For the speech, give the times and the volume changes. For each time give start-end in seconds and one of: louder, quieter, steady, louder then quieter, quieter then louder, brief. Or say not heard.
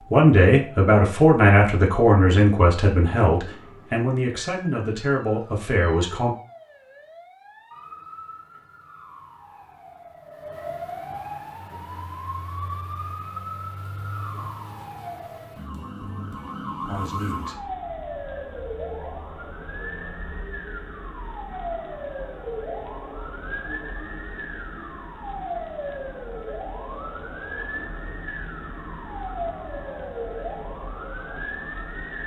0.1-6.3 quieter
16.8-17.6 brief.